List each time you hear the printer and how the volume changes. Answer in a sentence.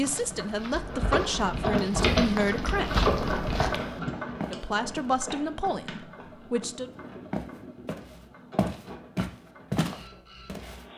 The printer can be heard from 0.0 to 10.9 s, getting quieter.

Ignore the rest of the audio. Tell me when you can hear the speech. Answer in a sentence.
The speech can be heard from 0.0 to 3.0 s and from 4.4 to 6.9 s.